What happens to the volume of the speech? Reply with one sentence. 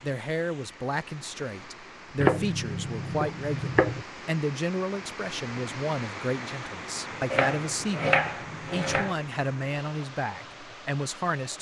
The loudness of the speech stays about the same.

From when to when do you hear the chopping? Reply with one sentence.
The chopping can be heard from 2.1 to 4.0 s and from 7.3 to 9.2 s.